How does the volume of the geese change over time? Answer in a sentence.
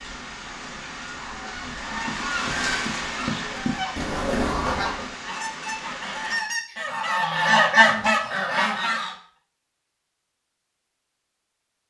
The volume of the geese goes up.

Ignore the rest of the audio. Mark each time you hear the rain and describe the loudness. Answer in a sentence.
You can hear the rain from 0.0 to 6.4 s, getting louder then quieter.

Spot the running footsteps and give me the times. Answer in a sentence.
The running footsteps can be heard from 1.6 to 5.2 s.